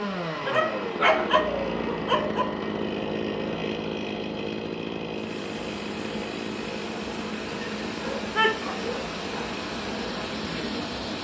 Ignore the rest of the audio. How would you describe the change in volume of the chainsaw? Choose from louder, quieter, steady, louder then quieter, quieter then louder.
quieter.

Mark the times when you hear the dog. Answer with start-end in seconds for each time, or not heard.
0.5-2.5, 7.6-9.6.